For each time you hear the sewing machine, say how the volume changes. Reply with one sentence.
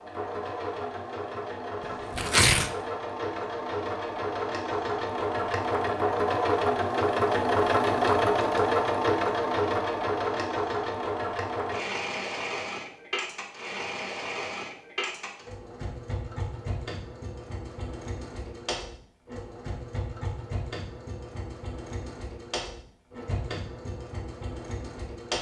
The sewing machine can be heard from 0.0 to 25.3 s, getting louder then quieter.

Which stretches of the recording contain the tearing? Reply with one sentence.
You can hear the tearing from 1.8 to 2.7 s.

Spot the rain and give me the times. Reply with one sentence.
The rain can't be heard in this clip.